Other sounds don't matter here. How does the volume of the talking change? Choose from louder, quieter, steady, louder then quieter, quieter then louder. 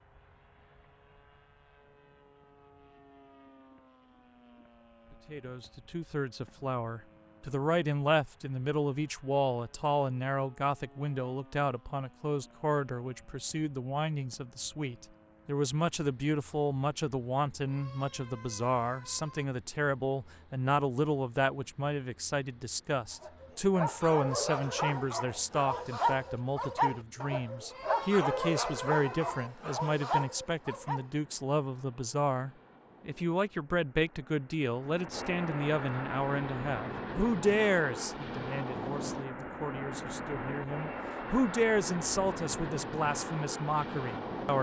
steady.